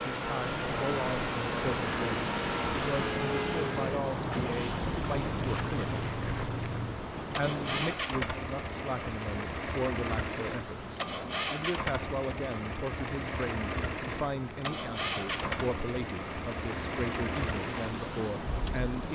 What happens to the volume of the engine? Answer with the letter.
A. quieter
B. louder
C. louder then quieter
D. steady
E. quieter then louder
D.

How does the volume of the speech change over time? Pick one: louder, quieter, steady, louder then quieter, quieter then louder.
steady.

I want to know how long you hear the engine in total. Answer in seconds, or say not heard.
19 s.